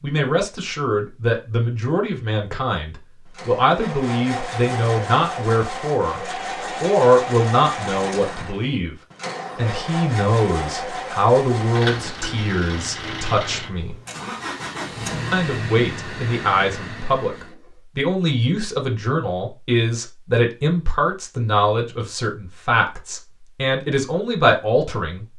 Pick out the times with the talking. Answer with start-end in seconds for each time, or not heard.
0.0-6.2, 6.8-8.9, 9.6-13.9, 15.3-25.3.